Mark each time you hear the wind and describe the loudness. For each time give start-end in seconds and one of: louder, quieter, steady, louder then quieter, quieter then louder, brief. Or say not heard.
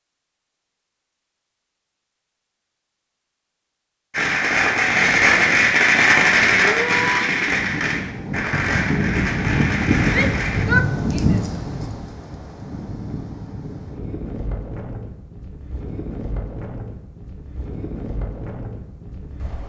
7.5-19.6 quieter.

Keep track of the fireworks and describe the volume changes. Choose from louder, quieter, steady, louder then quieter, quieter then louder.
quieter.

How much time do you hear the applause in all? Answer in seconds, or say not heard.
not heard.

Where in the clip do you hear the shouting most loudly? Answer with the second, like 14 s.
11 s.